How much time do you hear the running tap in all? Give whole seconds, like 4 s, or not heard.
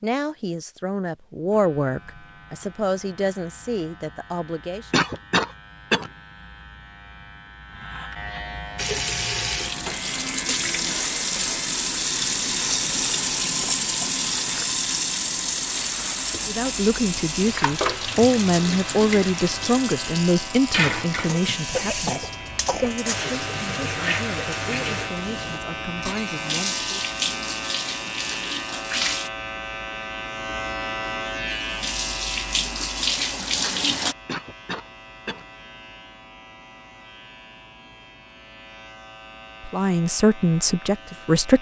23 s.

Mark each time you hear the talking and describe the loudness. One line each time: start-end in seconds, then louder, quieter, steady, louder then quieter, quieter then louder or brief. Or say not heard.
0.0-4.9 louder then quieter
16.4-27.1 quieter
39.6-41.5 brief.